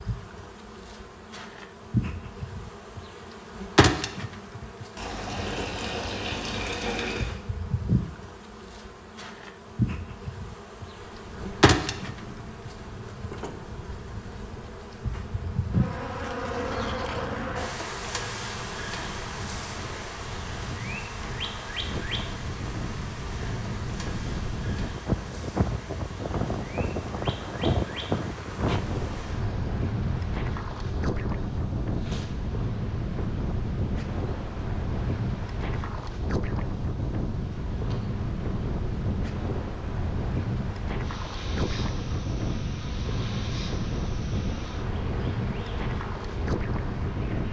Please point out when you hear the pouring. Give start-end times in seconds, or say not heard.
5.0-7.3.